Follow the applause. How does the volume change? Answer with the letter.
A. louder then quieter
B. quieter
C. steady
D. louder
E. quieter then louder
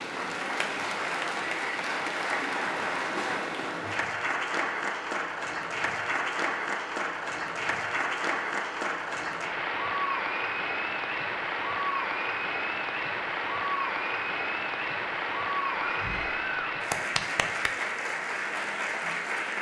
C.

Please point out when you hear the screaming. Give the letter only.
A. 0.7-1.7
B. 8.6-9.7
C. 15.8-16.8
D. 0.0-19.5
C.